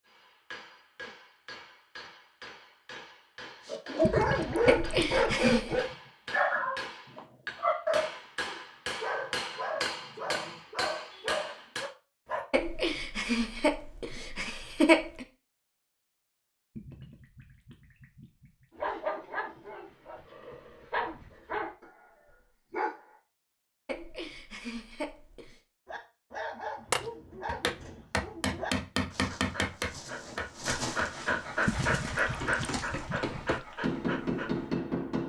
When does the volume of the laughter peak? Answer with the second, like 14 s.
15 s.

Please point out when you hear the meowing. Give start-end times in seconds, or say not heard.
not heard.